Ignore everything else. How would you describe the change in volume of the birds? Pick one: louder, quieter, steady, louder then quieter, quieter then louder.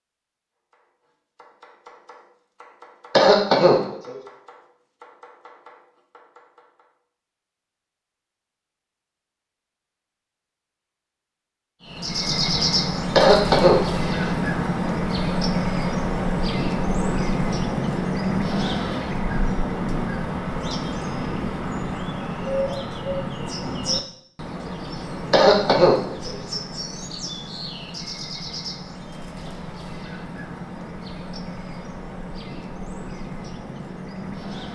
quieter.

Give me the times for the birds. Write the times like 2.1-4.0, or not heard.
11.8-34.6.